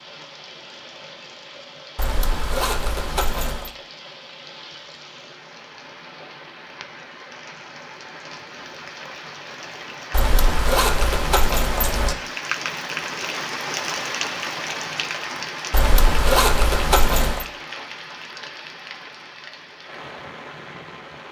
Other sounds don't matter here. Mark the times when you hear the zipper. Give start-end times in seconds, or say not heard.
1.9-3.7, 10.1-12.2, 15.7-17.4.